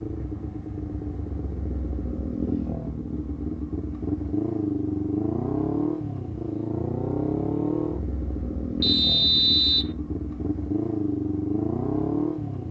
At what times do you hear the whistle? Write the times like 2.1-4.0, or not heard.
8.8-9.9.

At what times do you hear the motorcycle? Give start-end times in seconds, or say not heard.
0.0-12.6.